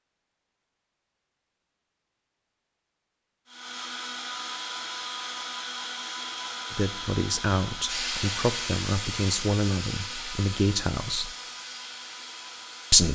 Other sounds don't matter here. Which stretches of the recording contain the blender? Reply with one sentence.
The blender can be heard from 3.5 to 13.0 s.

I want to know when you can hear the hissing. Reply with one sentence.
You can hear the hissing from 7.8 to 13.0 s.